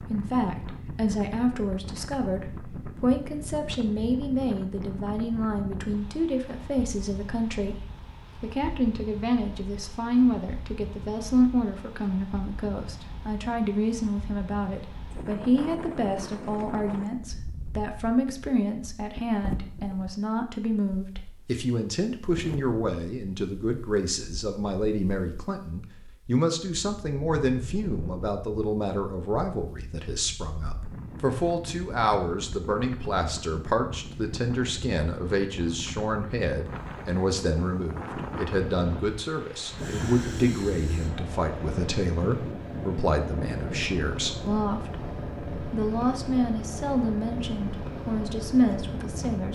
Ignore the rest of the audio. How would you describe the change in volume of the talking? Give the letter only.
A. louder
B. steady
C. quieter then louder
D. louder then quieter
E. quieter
B.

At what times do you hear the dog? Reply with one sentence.
The dog can't be heard in this clip.